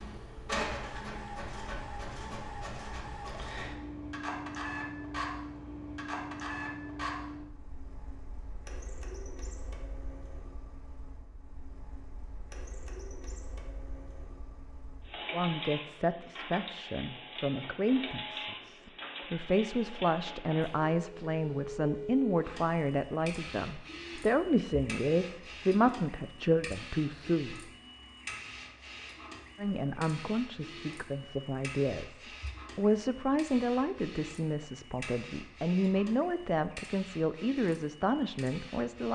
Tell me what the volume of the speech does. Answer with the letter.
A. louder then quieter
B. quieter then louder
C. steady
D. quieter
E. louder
C.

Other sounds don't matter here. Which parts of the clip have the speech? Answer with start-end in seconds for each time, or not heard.
15.3-27.7, 29.6-39.1.